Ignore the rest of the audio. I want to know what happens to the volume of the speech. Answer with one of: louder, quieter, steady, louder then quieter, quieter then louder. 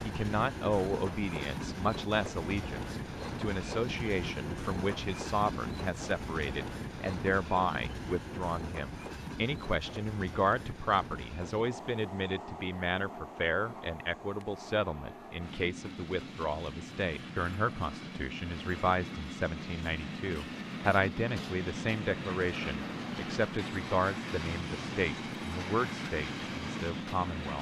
steady.